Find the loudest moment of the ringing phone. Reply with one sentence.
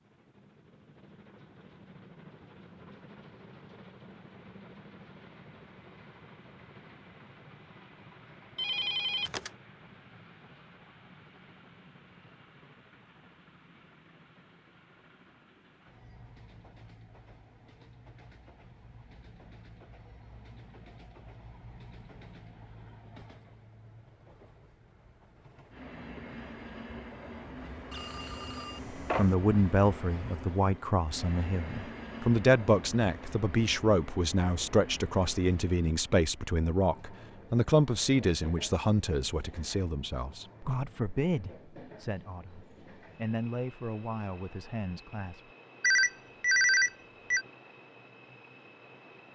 The loudest moment of the ringing phone is at 47 seconds.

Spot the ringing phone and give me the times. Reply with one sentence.
The ringing phone can be heard from 8.6 to 9.5 s, from 27.9 to 29.4 s and from 45.8 to 47.5 s.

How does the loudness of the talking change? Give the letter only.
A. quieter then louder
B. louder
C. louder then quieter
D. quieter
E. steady
D.